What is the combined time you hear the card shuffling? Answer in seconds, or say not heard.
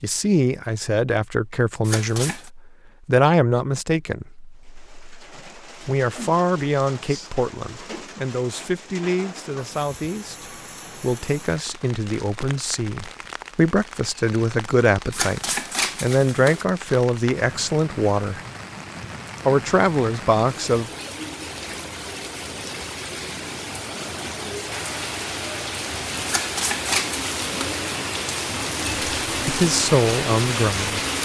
4 s.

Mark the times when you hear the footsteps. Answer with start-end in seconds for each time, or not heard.
not heard.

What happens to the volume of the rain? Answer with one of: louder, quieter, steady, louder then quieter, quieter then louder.
louder.